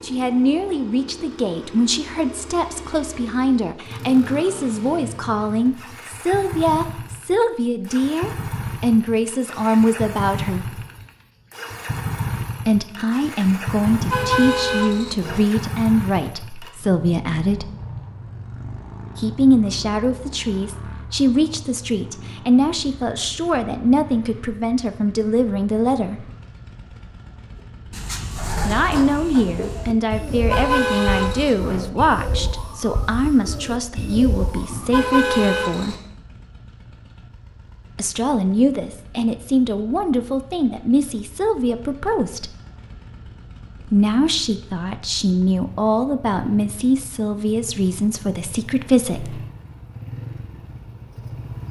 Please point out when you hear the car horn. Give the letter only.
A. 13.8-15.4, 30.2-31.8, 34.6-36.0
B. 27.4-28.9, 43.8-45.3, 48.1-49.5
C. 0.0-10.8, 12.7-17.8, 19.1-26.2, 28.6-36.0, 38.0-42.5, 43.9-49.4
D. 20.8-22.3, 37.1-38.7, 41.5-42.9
A.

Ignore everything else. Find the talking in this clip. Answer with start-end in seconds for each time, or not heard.
0.0-10.8, 12.7-17.8, 19.1-26.2, 28.6-36.0, 38.0-42.5, 43.9-49.4.